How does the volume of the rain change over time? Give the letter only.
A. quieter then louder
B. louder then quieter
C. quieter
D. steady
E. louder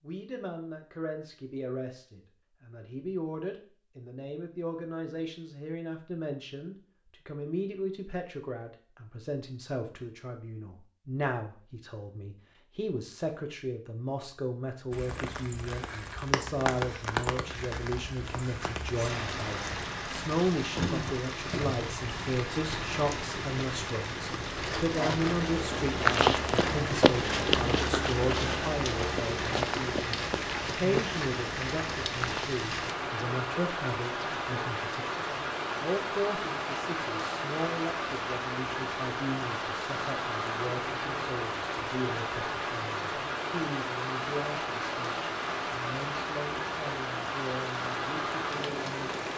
D.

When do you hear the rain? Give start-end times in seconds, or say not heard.
14.9-49.3.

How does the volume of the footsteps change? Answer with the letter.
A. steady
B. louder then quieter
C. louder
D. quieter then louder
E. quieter
E.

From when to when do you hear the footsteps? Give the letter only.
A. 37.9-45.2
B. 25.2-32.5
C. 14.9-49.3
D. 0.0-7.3
B.